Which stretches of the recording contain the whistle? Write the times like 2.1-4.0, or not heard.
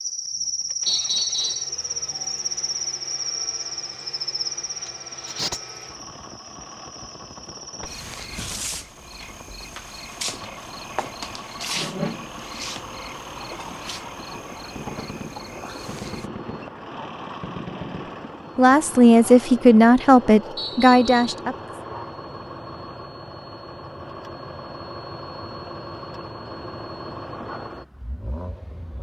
0.8-1.7, 20.6-21.2.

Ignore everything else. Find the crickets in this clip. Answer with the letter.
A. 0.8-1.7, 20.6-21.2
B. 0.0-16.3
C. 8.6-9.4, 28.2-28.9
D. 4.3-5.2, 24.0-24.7
B.